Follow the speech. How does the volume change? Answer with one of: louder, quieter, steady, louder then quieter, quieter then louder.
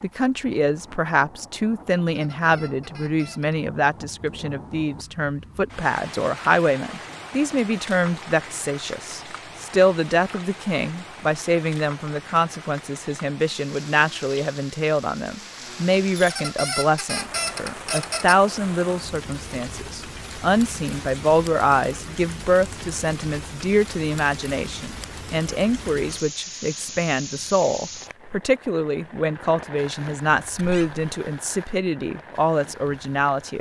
steady.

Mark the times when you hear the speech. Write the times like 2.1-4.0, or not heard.
0.0-33.5.